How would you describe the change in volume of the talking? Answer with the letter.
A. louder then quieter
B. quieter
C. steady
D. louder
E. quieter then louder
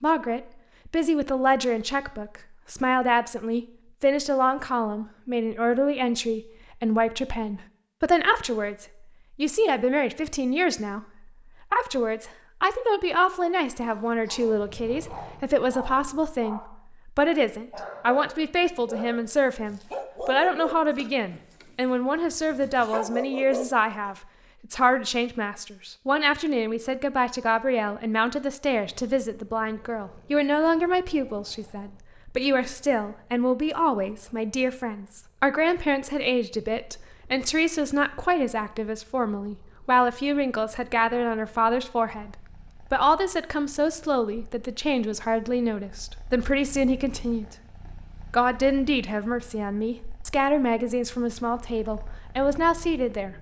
C.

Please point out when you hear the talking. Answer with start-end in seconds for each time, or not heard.
0.0-47.5, 48.3-53.3.